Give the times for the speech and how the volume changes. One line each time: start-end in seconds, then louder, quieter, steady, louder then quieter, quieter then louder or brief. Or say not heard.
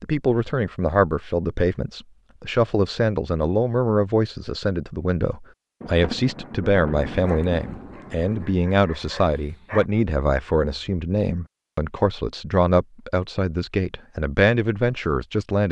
0.0-15.6 steady.